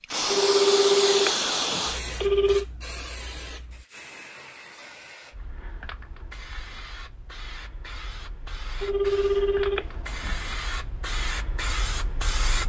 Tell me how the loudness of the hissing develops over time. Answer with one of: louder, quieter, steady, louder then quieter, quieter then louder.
quieter then louder.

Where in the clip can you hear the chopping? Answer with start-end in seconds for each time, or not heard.
not heard.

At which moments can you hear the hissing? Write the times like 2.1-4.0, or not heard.
0.0-12.6.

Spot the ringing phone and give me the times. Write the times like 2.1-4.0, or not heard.
0.2-2.6, 8.8-10.4.